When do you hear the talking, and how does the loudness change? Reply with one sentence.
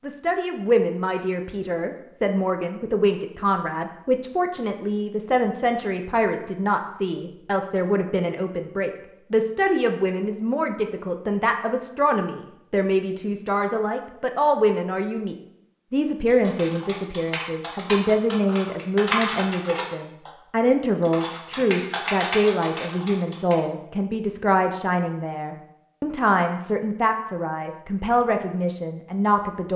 You can hear the talking from 0.0 to 29.7 s, at a steady volume.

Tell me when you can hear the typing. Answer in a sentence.
You can hear the typing from 16.3 to 20.3 s and from 21.0 to 23.6 s.